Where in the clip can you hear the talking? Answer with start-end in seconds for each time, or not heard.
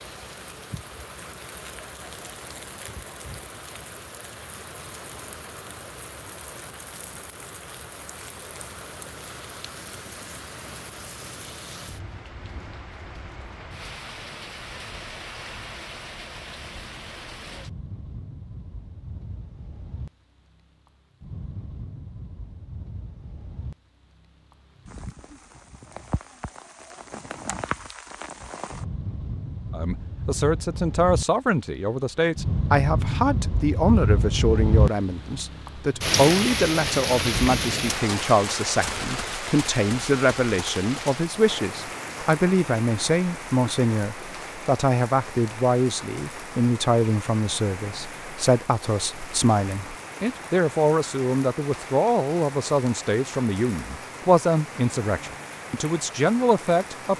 29.7-57.1.